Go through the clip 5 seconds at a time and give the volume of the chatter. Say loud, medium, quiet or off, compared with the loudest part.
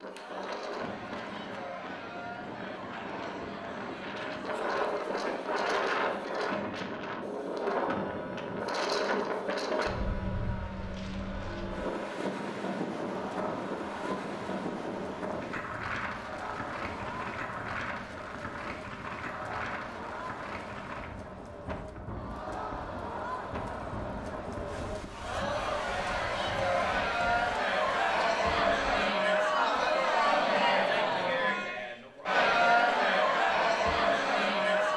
quiet, quiet, quiet, quiet, quiet, loud, loud.